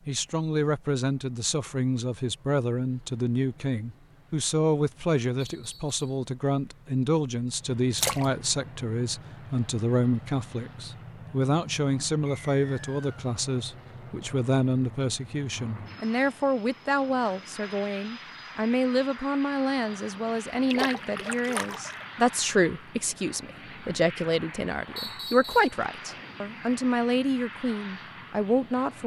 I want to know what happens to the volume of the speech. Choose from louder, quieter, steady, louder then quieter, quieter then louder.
steady.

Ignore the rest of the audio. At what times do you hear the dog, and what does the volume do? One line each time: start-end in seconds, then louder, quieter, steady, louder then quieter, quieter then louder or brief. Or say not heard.
not heard.